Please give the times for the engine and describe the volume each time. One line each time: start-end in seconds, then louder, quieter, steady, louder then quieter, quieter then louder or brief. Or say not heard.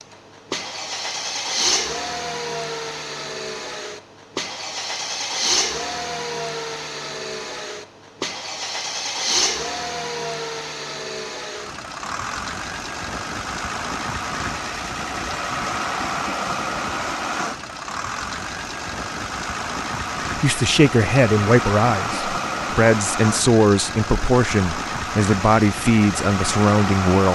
0.0-27.3 steady.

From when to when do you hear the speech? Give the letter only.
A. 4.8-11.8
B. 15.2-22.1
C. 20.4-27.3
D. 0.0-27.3
C.